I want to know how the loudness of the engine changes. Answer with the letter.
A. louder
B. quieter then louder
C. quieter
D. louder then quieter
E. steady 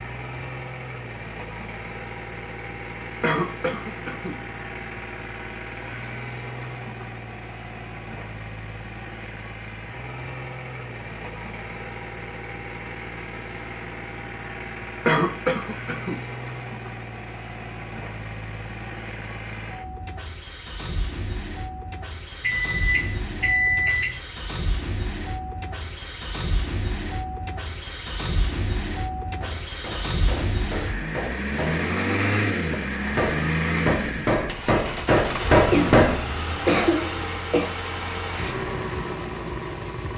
A.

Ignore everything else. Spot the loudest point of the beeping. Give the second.
24 s.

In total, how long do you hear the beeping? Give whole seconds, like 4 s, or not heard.
2 s.